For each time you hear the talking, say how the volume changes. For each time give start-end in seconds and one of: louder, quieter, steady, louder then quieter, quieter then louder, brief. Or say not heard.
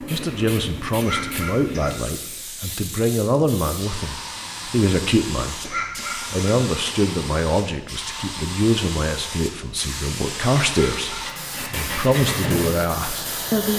0.0-13.7 steady.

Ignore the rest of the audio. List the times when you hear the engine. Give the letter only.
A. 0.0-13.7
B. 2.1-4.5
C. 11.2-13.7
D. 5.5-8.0
C.